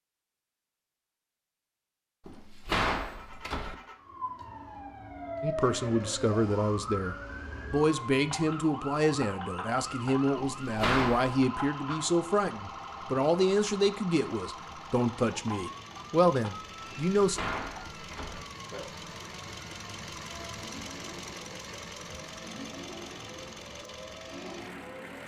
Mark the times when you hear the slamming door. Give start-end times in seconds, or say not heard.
2.2-3.8, 10.6-11.3, 17.1-18.4.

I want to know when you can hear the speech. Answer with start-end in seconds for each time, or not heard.
5.4-17.4.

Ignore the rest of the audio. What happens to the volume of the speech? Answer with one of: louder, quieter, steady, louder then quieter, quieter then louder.
steady.